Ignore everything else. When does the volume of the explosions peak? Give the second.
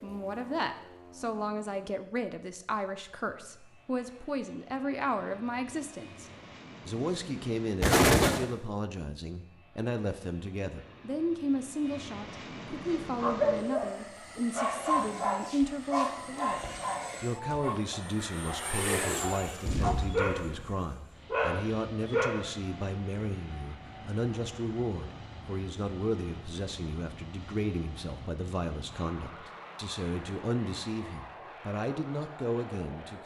8 s.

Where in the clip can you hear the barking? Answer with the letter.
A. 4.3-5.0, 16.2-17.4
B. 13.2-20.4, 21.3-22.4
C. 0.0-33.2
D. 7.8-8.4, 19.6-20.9
B.